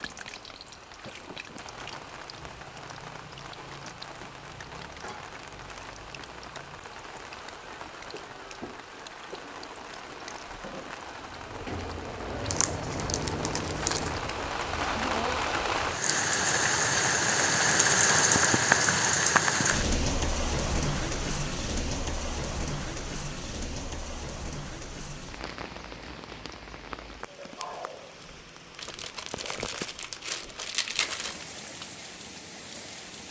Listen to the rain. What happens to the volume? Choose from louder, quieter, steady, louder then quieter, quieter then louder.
louder then quieter.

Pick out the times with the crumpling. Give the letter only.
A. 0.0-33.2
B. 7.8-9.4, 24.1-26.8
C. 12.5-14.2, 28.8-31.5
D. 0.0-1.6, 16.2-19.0
C.